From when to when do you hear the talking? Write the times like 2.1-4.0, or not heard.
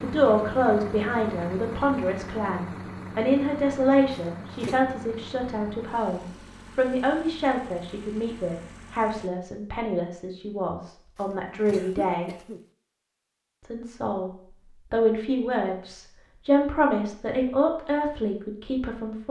0.0-12.3, 13.6-14.3, 14.9-19.2.